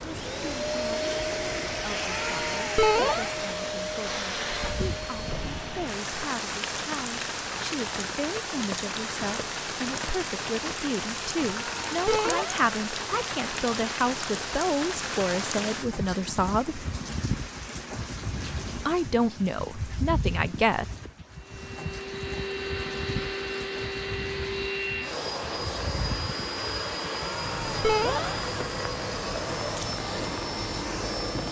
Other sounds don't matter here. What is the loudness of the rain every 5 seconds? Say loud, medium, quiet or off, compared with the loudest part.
medium, loud, loud, loud, medium, medium, medium.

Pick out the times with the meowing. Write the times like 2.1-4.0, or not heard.
2.0-3.3, 11.6-12.6, 27.1-28.4.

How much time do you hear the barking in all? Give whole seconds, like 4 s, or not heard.
not heard.